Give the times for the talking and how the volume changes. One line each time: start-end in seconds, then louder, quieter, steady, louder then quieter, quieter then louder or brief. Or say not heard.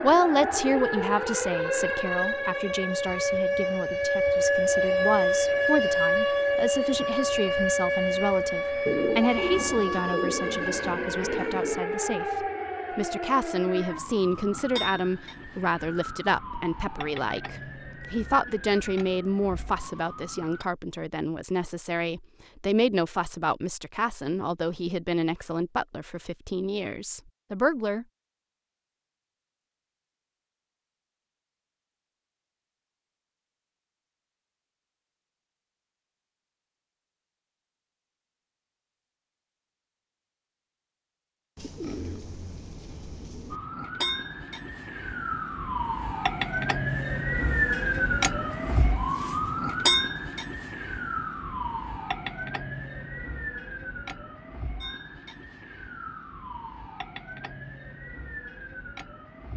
0.0-28.1 steady.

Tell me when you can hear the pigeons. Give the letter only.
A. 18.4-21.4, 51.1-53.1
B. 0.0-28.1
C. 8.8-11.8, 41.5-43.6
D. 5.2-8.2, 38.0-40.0
C.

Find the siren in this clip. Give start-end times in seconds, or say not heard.
0.0-20.6, 43.5-59.5.